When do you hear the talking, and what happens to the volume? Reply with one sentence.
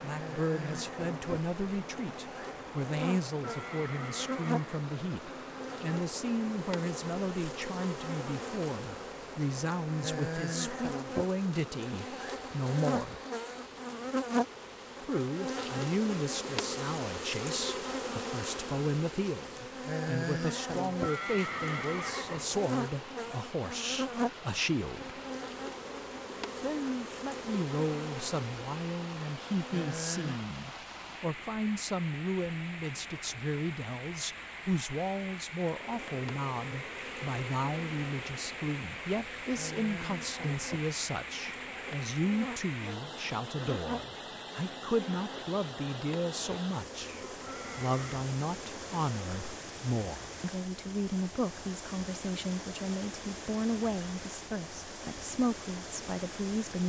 The talking can be heard from 0.0 to 13.2 s, at a steady volume; from 15.0 to 25.2 s, at a steady volume; and from 26.6 to 56.8 s, at a steady volume.